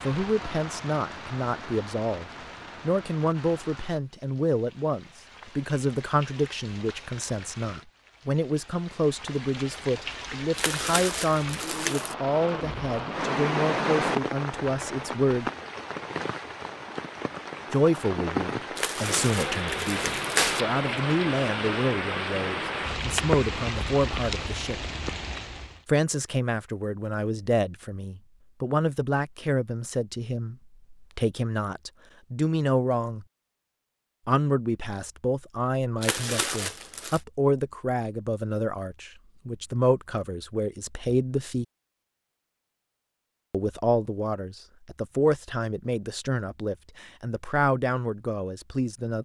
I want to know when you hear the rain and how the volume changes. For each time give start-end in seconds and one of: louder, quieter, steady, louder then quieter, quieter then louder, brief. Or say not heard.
0.0-25.8 louder.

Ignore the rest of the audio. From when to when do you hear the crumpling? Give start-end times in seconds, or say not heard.
10.6-12.2, 18.8-20.6, 36.0-37.2.